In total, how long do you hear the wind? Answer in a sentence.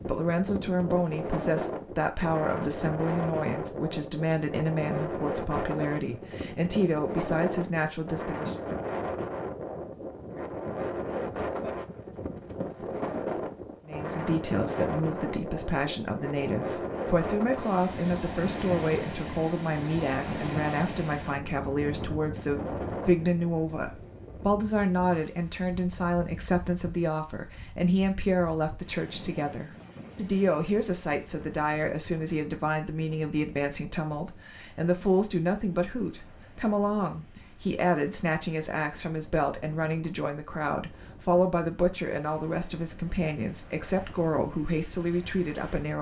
You can hear the wind for 46 seconds altogether.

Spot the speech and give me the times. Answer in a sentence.
You can hear the speech from 0.0 to 8.6 s and from 13.8 to 45.9 s.